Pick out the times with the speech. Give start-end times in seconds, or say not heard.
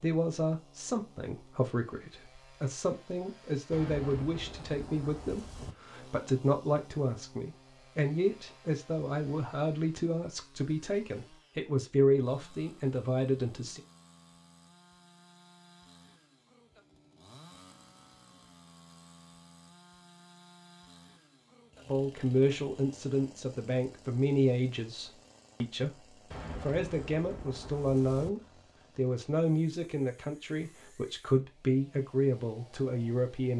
0.0-13.8, 21.9-26.0, 26.6-33.5.